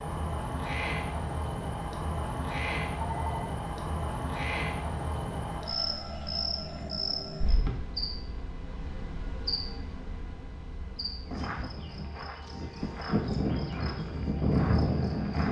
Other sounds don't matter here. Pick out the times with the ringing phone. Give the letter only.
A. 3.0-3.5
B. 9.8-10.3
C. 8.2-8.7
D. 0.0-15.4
A.